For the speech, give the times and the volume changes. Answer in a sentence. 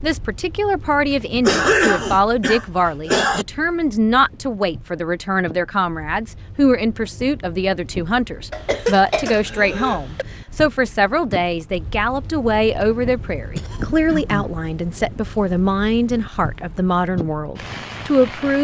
You can hear the speech from 0.0 to 18.5 s, at a steady volume.